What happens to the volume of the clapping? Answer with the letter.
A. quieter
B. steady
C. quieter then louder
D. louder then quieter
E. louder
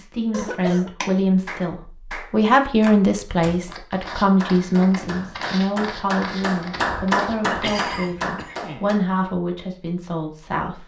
E.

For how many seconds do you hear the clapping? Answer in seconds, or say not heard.
8 s.